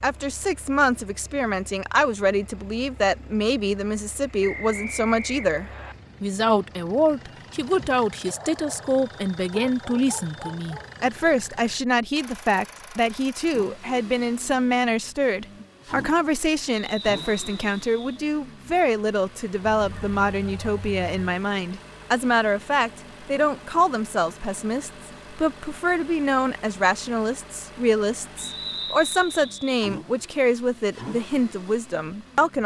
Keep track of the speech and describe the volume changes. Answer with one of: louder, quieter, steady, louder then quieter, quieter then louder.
steady.